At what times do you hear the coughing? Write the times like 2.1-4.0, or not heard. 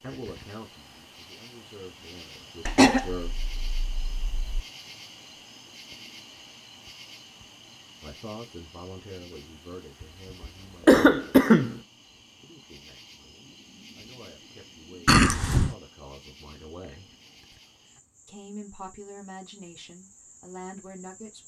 2.6-4.6, 10.8-11.8, 15.1-15.8.